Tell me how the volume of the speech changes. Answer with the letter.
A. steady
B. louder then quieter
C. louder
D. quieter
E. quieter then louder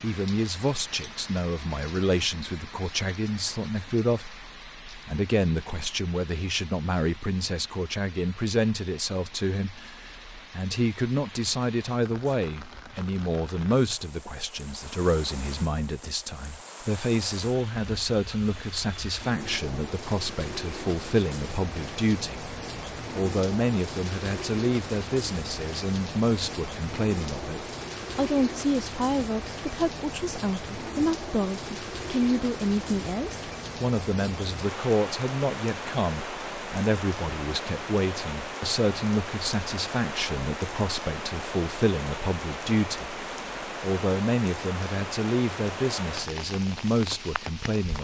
A.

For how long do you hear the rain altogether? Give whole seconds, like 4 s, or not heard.
48 s.